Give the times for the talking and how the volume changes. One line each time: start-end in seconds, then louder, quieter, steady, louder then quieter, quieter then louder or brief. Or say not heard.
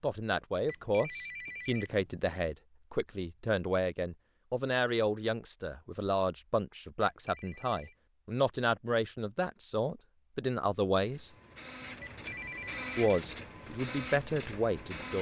0.0-11.3 steady
12.9-15.1 brief.